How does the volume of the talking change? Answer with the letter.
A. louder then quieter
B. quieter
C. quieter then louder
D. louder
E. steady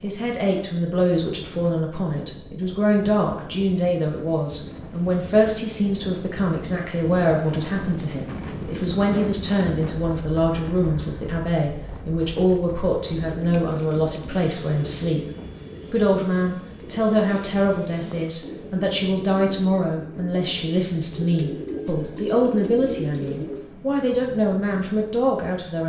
E.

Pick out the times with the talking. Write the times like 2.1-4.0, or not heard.
0.0-15.2, 15.9-25.8.